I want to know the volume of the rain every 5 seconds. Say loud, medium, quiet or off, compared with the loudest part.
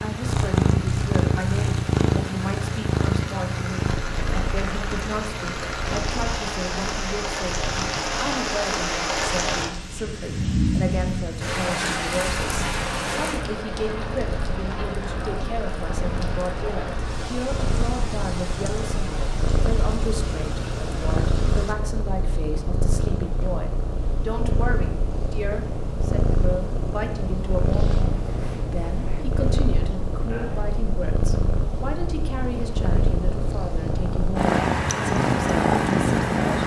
medium, loud, loud, medium, medium, off, off, off.